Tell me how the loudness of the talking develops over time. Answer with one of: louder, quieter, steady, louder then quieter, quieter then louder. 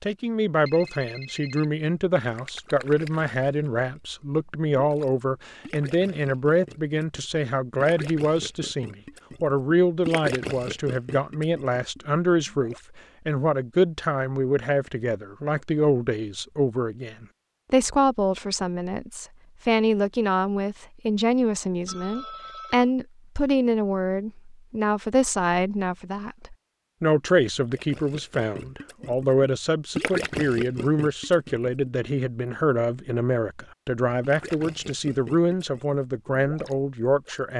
steady.